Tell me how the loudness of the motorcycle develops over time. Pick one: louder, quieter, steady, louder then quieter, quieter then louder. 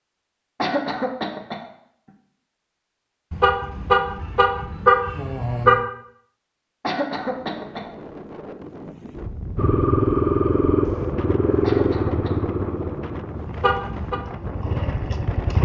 quieter then louder.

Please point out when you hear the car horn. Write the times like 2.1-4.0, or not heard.
3.3-5.8, 13.5-14.2.